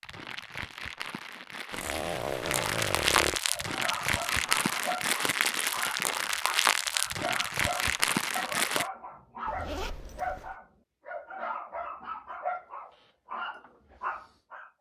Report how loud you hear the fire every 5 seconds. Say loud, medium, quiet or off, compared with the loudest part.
loud, loud, off.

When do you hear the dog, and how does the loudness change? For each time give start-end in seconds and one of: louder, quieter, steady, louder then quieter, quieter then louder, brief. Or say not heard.
3.5-14.7 steady.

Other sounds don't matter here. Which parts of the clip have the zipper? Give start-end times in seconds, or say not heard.
1.7-3.4, 9.4-10.6.